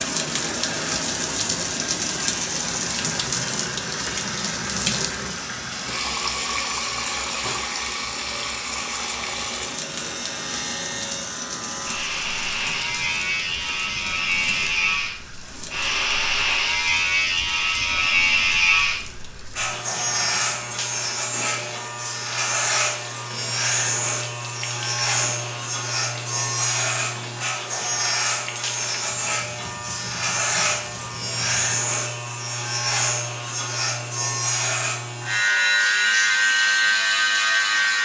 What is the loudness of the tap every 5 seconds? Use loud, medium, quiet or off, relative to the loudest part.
loud, loud, medium, quiet, quiet, quiet, quiet, off.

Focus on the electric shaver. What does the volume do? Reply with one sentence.
The volume of the electric shaver goes up.